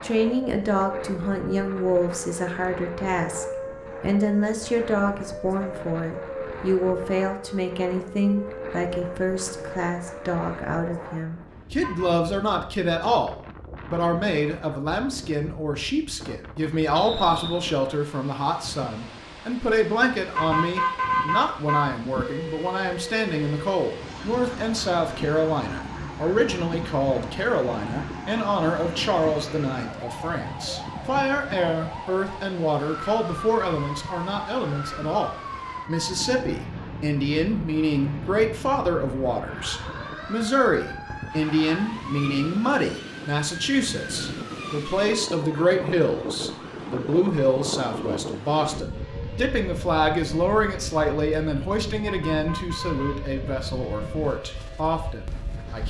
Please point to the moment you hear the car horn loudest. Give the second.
21 s.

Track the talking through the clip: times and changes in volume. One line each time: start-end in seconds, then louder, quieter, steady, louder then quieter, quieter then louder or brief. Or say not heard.
0.0-55.8 steady.